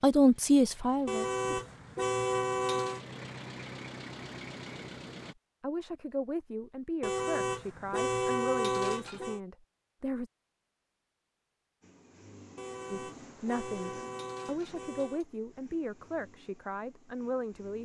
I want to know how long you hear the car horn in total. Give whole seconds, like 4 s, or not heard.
7 s.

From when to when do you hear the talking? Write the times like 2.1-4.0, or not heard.
0.0-1.4, 5.6-10.3, 12.9-17.7.